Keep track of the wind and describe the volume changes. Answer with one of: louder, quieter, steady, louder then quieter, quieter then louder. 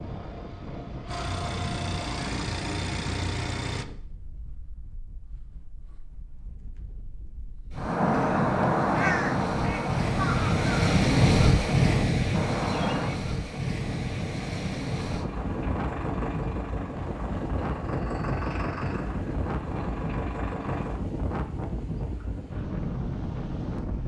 louder then quieter.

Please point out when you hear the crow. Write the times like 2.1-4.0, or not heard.
7.8-13.2.